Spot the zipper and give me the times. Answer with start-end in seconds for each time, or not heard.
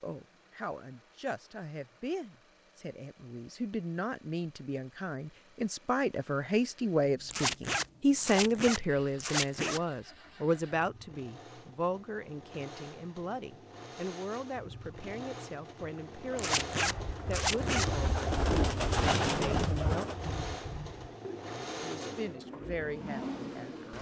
7.3-9.8, 16.4-17.9.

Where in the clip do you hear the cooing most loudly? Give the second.
19 s.